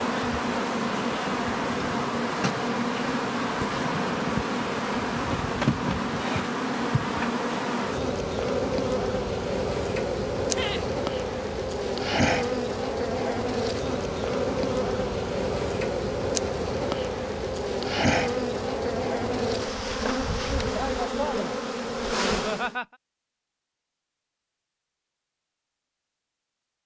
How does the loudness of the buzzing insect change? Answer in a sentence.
The volume of the buzzing insect stays about the same.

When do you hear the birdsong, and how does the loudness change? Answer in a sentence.
The birdsong can't be heard in this clip.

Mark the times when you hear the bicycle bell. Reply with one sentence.
You can't hear the bicycle bell here.